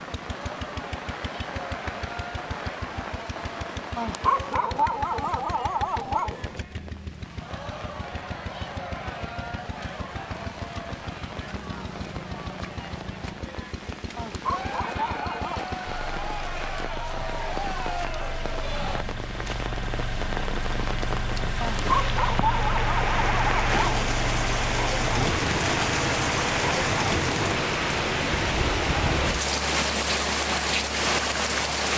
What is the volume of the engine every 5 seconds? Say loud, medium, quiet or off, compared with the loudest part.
medium, medium, medium, medium, loud, loud, medium.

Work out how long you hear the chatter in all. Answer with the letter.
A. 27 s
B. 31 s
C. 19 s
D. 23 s
C.